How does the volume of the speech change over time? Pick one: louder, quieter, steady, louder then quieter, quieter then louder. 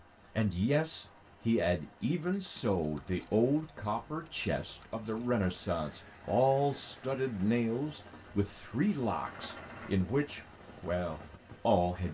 steady.